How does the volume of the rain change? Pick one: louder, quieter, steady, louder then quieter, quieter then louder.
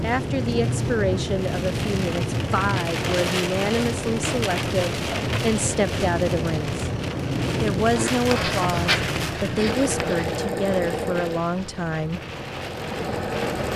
quieter.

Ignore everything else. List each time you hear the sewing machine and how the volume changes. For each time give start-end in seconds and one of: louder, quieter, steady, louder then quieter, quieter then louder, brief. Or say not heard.
9.7-13.7 quieter then louder.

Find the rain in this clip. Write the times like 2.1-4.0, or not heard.
0.0-13.7.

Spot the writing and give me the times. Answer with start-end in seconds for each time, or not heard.
8.0-10.3.